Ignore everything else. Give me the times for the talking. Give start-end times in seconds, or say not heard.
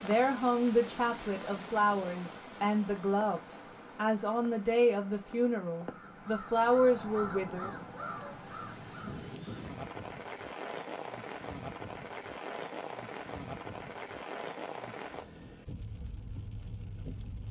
0.0-7.7.